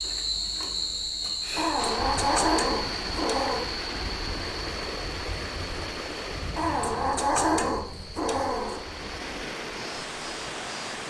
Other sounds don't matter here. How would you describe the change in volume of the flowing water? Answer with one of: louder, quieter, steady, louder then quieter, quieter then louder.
quieter then louder.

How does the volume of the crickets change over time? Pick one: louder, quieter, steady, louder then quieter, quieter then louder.
quieter.